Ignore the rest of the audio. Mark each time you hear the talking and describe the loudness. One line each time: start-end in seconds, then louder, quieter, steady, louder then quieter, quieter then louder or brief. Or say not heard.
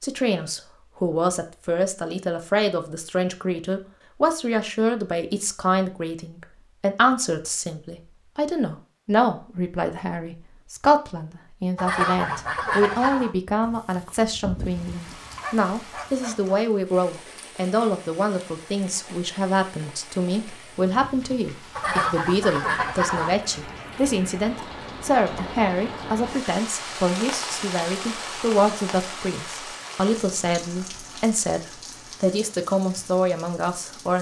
0.0-34.1 steady.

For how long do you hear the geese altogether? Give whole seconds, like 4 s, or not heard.
3 s.